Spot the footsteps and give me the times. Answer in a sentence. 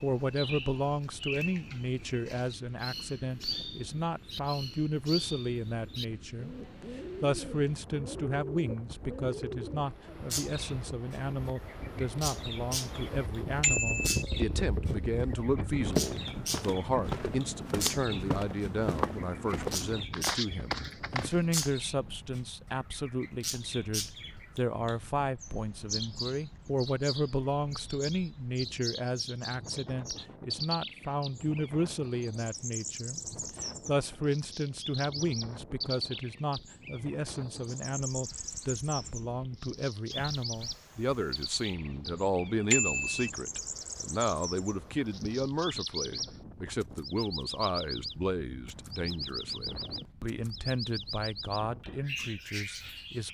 You can hear the footsteps from 15.8 to 21.7 s.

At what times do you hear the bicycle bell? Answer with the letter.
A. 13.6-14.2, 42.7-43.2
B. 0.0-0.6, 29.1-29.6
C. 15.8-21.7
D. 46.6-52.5
A.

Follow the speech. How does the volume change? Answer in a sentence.
The volume of the speech stays about the same.